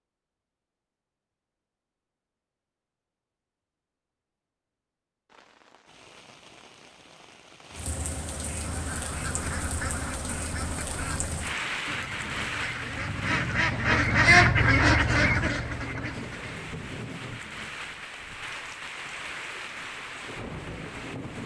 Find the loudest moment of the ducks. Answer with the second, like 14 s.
14 s.